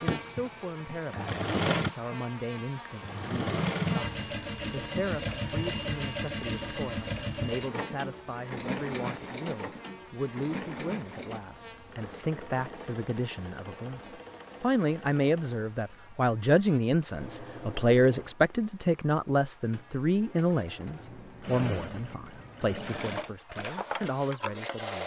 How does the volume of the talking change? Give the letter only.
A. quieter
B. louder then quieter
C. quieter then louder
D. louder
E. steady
B.